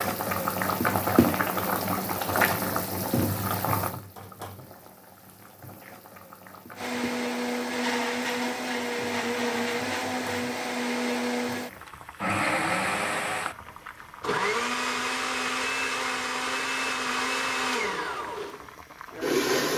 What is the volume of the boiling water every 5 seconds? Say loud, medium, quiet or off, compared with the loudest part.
loud, quiet, quiet, quiet.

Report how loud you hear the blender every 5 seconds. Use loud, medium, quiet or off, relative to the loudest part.
off, loud, loud, loud.